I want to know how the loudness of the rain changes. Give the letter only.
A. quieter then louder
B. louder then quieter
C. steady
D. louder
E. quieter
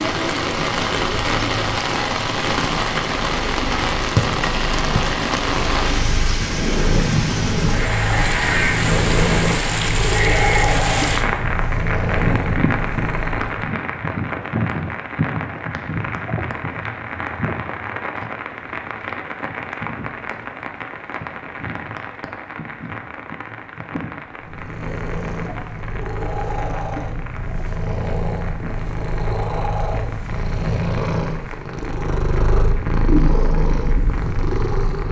E.